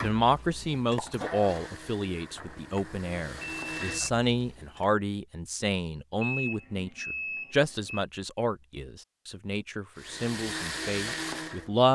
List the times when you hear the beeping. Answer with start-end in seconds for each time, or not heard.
2.4-4.1, 6.2-8.1.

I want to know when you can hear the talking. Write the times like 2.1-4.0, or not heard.
0.0-11.9.